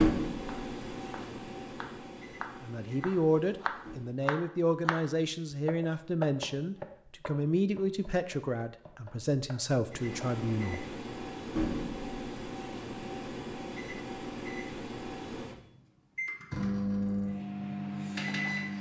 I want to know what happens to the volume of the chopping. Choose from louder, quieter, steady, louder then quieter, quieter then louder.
louder then quieter.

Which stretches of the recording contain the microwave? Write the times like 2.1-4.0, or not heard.
0.0-4.2, 9.8-18.7.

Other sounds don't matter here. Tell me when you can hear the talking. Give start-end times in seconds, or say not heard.
2.6-10.8.